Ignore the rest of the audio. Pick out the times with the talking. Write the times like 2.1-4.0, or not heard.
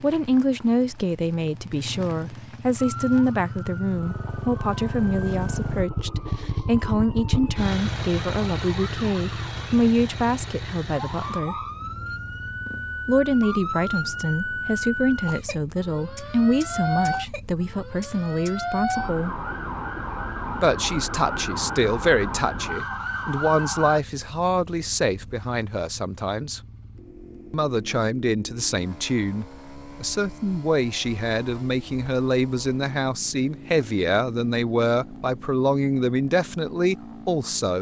0.0-11.6, 13.1-19.4, 20.6-26.6, 27.5-37.7.